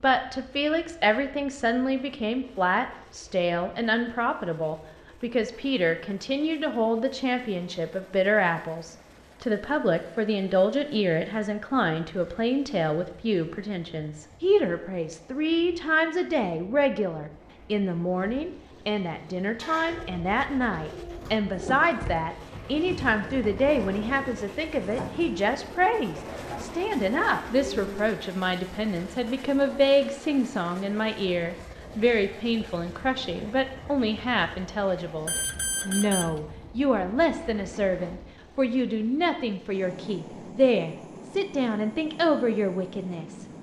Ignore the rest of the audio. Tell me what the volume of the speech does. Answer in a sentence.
The volume of the speech stays about the same.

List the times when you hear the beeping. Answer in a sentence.
The beeping can be heard from 35.2 to 36.4 s.